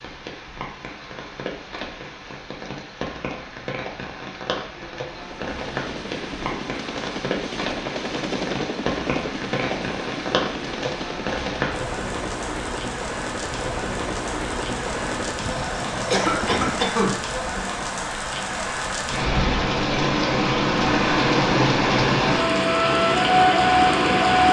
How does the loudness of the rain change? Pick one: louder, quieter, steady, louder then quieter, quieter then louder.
louder.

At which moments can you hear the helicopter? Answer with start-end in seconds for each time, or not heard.
5.0-16.9.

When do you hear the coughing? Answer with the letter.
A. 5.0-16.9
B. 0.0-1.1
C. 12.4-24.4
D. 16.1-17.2
D.